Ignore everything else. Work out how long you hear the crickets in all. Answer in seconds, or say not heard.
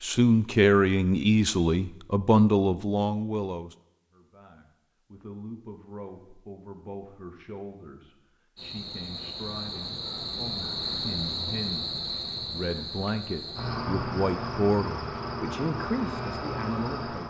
9 s.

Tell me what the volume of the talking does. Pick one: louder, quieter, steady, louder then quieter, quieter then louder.
quieter then louder.